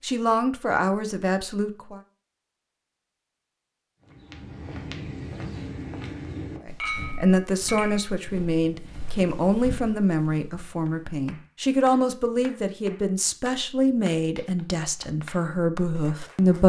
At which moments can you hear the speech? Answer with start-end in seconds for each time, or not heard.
0.0-2.0, 6.7-16.6.